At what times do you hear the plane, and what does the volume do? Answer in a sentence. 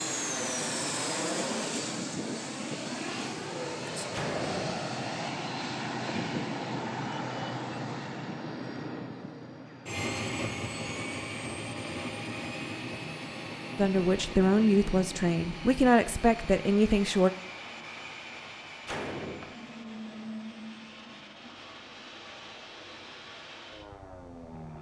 You can hear the plane from 0.0 to 24.7 s, getting quieter.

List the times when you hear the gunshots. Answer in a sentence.
The gunshots can be heard from 4.1 to 4.8 s and from 18.9 to 19.6 s.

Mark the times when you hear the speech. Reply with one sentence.
You can hear the speech from 13.8 to 17.3 s.